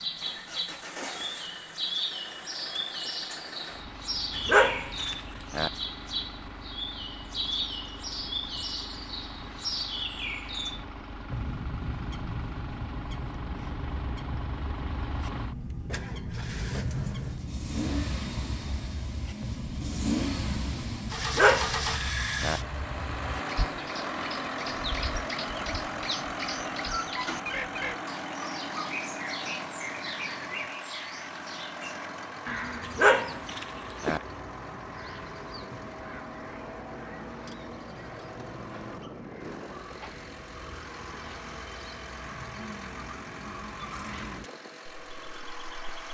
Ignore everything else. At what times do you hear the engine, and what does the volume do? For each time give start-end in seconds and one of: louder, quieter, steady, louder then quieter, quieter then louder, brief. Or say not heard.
0.0-46.0 louder then quieter.